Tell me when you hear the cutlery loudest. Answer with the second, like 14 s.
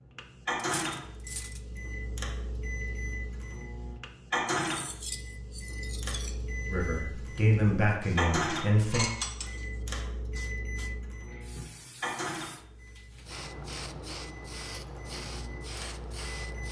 9 s.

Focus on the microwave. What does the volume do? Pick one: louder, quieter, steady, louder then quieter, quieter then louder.
louder then quieter.